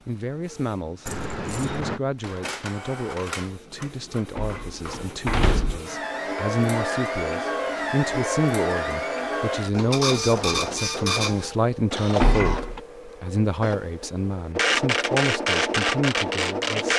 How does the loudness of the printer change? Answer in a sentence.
The volume of the printer goes up.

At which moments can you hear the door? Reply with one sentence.
The door can be heard from 4.3 to 5.8 s and from 12.2 to 12.8 s.